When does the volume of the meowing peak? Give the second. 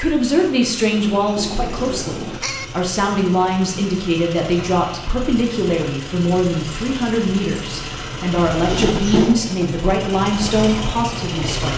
9 s.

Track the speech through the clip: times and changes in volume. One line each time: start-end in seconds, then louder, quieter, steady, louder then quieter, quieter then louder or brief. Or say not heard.
0.0-11.7 steady.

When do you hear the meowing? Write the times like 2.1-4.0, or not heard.
0.9-2.6, 8.7-9.4.